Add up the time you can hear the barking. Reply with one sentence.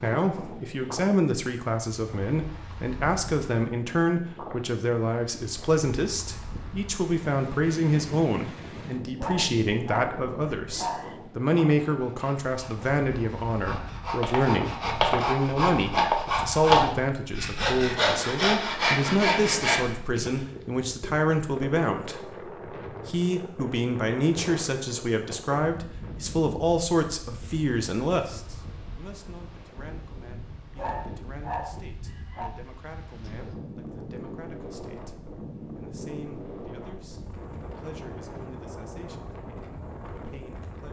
The barking can be heard for 4 seconds in total.